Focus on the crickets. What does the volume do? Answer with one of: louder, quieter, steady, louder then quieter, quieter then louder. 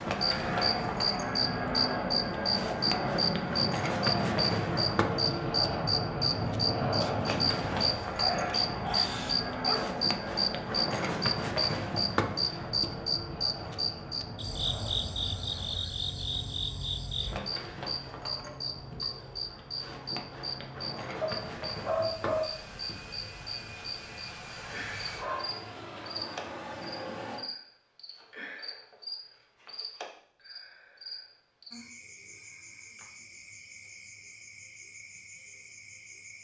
quieter.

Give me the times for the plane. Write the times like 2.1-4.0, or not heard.
0.0-27.4.